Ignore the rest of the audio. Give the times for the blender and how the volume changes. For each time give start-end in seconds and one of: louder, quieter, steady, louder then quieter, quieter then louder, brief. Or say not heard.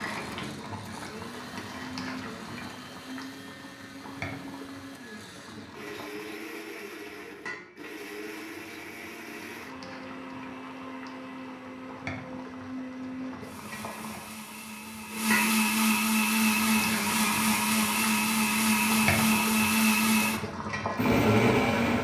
0.0-21.9 louder.